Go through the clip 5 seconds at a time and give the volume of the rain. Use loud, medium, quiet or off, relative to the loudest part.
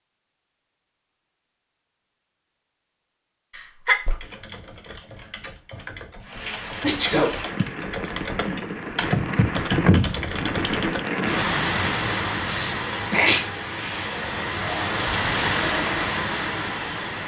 off, loud, loud, loud.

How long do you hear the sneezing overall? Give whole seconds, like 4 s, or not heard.
3 s.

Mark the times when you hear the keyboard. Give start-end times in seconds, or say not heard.
4.0-11.1.